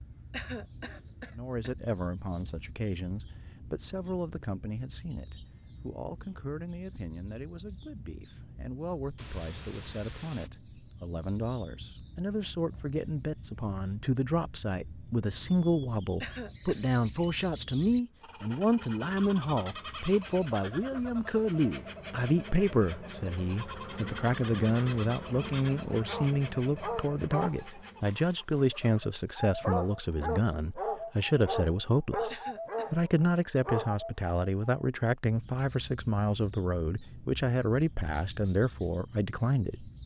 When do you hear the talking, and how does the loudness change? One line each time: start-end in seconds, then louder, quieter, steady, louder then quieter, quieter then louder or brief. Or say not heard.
1.3-39.9 louder.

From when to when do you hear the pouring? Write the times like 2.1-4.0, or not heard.
9.2-10.5.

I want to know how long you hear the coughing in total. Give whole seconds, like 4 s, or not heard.
3 s.